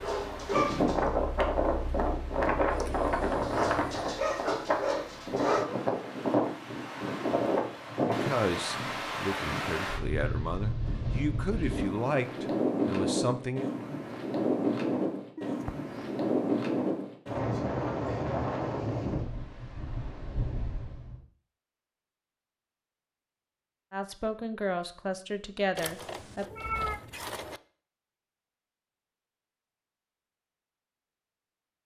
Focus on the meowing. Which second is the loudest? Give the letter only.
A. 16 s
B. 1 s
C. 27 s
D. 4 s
C.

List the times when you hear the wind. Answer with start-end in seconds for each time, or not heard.
0.0-21.2.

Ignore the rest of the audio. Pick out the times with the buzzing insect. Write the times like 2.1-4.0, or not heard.
not heard.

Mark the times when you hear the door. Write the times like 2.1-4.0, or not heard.
not heard.